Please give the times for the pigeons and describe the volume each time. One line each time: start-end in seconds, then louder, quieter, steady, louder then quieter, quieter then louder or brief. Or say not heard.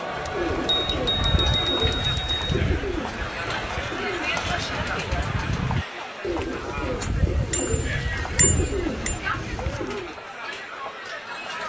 0.0-10.2 steady.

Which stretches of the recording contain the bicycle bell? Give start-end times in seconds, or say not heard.
0.2-2.6, 7.5-9.2.